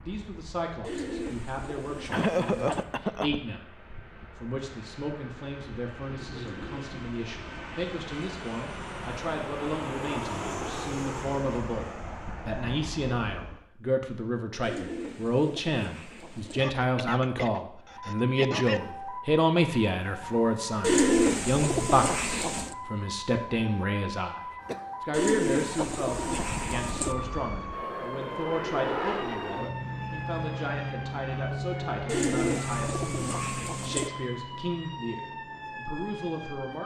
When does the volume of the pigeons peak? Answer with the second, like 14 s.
21 s.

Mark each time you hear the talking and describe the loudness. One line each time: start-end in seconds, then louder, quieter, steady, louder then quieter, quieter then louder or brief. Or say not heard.
0.0-36.8 louder then quieter.